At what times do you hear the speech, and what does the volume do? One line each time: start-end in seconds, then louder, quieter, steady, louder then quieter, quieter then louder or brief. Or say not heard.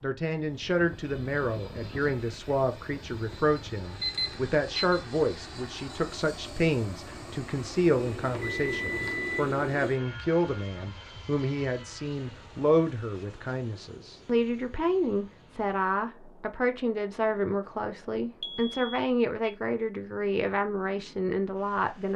0.0-22.1 steady.